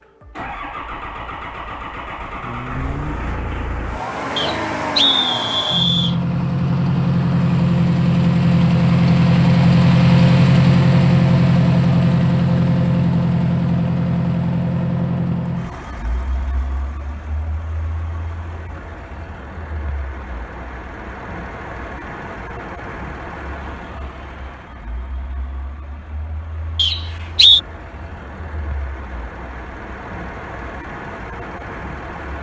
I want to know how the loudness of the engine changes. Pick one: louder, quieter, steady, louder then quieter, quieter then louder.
louder then quieter.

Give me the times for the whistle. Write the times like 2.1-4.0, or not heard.
4.3-6.2, 26.8-27.6.